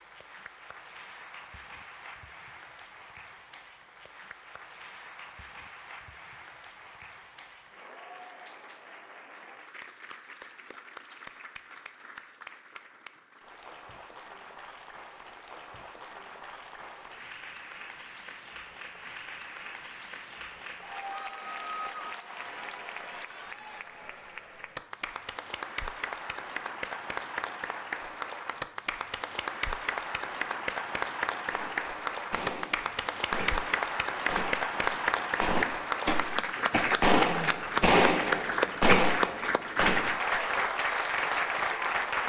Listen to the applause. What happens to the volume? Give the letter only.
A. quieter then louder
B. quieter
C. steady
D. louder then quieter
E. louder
E.